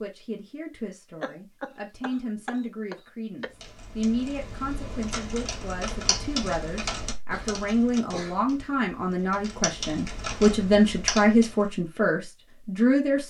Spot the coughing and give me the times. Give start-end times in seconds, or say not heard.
1.2-3.5, 7.3-8.4.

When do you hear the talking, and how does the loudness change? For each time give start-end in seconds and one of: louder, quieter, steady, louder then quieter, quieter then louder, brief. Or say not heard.
0.0-13.2 louder.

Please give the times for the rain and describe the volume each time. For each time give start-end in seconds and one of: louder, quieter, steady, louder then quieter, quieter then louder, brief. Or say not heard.
not heard.